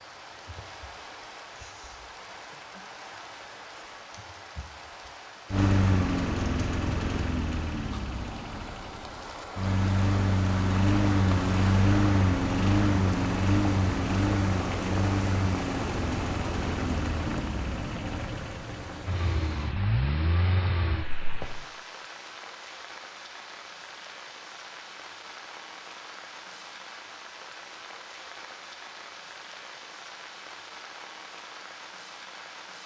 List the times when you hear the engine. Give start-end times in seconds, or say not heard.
5.5-21.7.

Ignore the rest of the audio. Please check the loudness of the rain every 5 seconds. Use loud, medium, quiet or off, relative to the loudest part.
medium, medium, loud, loud, medium, medium, medium.